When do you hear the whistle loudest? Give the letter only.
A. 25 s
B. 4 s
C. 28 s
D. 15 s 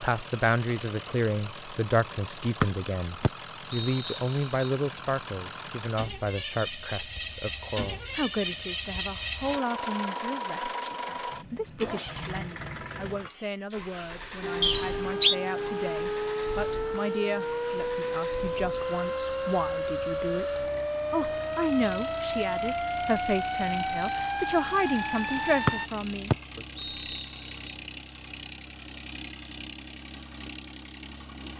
D.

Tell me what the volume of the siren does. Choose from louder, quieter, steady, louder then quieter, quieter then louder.
steady.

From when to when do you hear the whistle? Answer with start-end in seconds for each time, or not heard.
2.6-4.7, 14.6-15.3, 25.6-27.7.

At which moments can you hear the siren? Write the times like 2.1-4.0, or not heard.
14.4-25.9.